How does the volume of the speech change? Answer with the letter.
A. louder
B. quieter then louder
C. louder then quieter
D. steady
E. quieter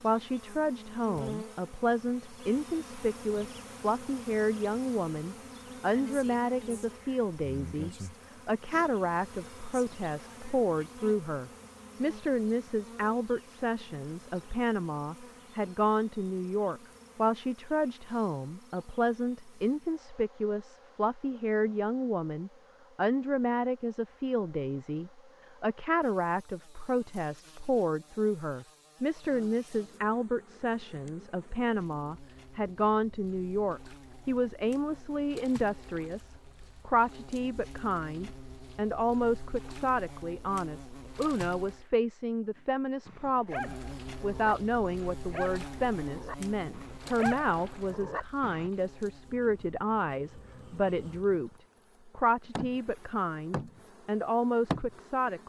D.